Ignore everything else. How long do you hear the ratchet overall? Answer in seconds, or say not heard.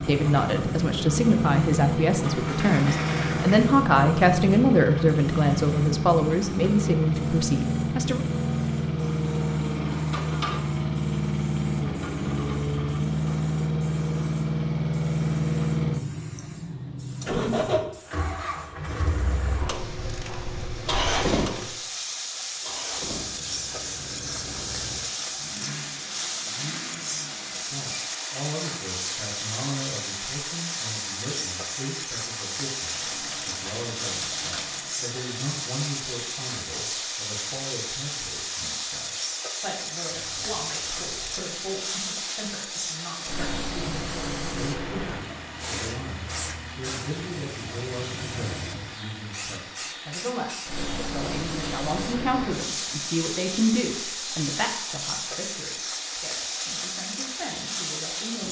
4 s.